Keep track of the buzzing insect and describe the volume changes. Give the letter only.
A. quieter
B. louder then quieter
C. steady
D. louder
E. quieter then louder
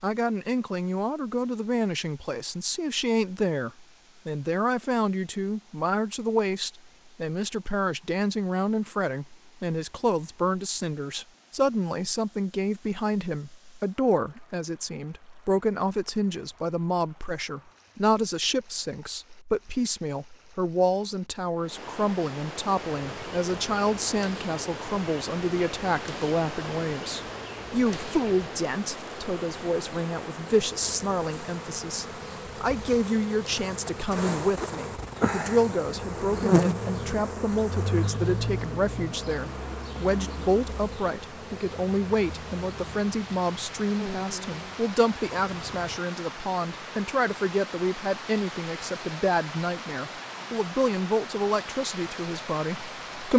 B.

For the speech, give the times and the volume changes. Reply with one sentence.
You can hear the speech from 0.0 to 53.3 s, at a steady volume.